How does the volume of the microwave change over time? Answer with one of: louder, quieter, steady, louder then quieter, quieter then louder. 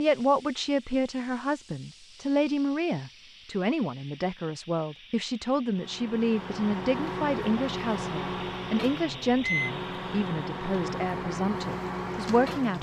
steady.